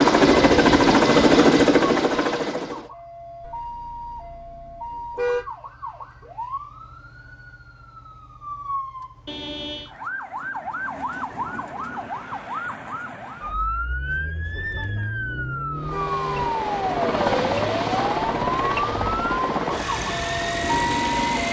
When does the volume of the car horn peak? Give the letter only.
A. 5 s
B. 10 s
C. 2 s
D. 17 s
A.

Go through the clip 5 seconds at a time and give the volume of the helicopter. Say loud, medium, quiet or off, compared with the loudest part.
loud, off, off, medium, medium.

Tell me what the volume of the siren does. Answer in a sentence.
The loudness of the siren goes up.